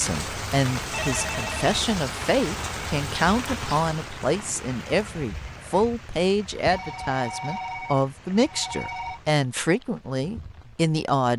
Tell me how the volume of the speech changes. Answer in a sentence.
The volume of the speech stays about the same.